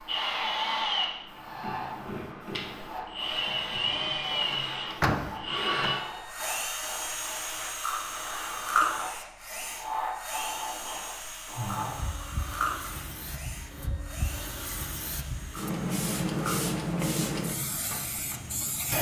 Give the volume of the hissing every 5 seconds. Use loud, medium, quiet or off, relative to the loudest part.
medium, medium, medium, loud.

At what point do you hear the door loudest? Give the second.
5 s.